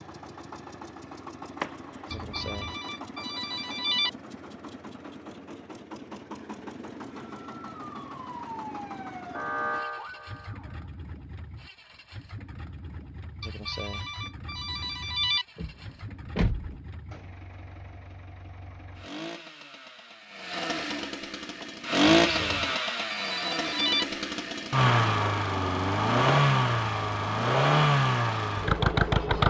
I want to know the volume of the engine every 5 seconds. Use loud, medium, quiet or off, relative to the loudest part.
quiet, quiet, quiet, quiet, loud, loud.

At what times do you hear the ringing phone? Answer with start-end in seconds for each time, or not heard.
2.1-4.1, 13.4-15.4, 22.1-24.1.